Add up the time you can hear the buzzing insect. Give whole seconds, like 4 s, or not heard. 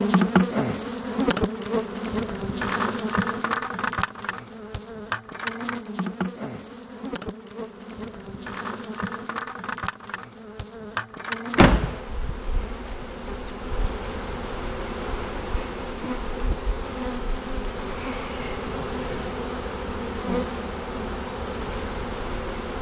23 s.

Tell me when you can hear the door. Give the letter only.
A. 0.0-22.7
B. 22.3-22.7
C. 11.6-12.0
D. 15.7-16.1
C.